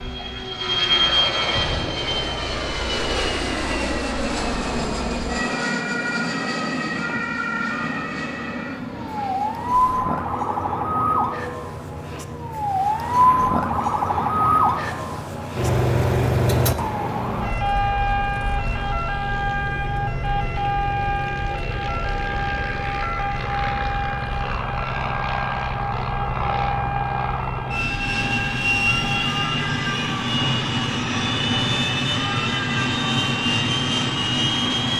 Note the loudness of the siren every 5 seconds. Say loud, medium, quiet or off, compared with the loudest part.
quiet, medium, loud, loud, medium, medium, medium.